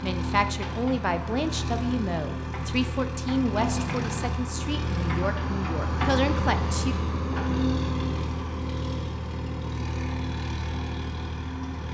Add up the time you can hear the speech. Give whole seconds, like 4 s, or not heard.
7 s.